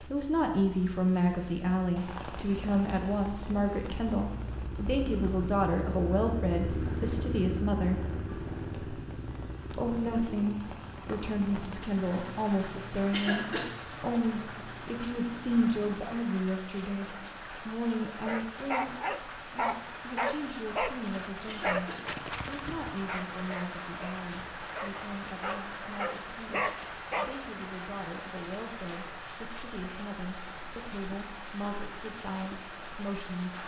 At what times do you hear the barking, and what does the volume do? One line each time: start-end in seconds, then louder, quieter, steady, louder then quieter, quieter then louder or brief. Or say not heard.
18.1-27.3 quieter then louder.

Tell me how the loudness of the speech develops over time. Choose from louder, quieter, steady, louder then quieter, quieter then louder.
quieter.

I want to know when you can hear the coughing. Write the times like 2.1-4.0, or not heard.
13.1-13.7, 21.4-22.1.